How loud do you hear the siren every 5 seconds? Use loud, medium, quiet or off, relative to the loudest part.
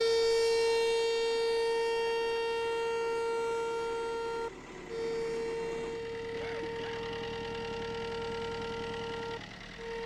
loud, medium.